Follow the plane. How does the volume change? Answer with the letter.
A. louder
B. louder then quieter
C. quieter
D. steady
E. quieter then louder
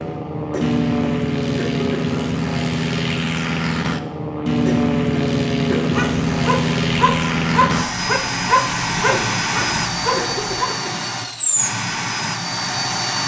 D.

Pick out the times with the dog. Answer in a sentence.
You can hear the dog from 5.9 to 10.7 s.